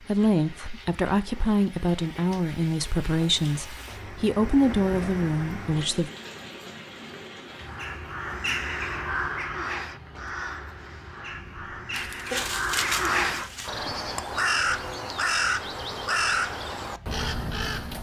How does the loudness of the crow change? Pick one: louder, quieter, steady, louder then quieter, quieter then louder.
quieter then louder.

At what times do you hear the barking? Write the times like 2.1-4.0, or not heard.
11.9-13.7.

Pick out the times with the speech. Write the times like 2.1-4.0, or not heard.
0.1-6.1.